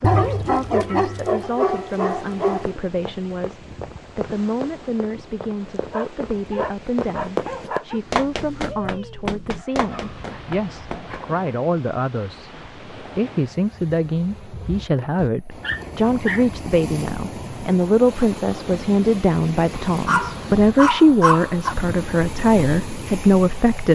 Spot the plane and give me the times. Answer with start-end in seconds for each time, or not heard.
not heard.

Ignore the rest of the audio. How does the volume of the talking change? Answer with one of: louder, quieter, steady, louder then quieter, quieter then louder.
louder.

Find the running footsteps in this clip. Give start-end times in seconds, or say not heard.
2.5-11.2.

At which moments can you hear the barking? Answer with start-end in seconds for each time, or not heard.
0.0-2.8, 5.9-8.0, 9.6-11.3, 14.9-16.4, 19.8-21.8.